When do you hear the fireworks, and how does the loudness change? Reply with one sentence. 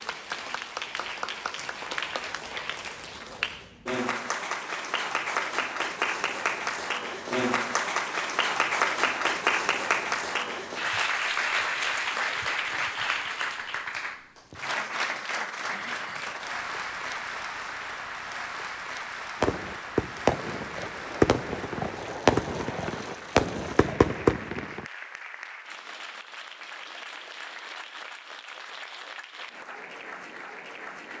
The fireworks can be heard from 19.4 to 24.9 s, at a steady volume.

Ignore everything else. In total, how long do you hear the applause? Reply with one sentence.
The applause can be heard for 31 seconds in total.